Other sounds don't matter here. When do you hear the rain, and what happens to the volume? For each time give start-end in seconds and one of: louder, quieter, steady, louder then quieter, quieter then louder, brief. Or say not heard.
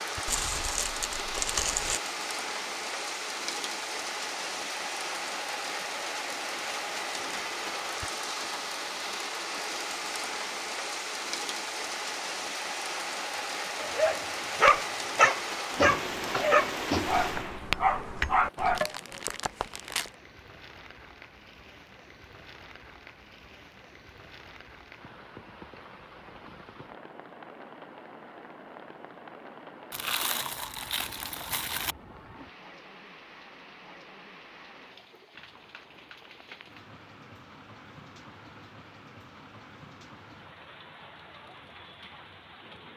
0.0-42.9 quieter.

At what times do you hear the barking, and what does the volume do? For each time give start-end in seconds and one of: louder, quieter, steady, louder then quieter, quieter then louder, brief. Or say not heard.
13.8-18.8 quieter.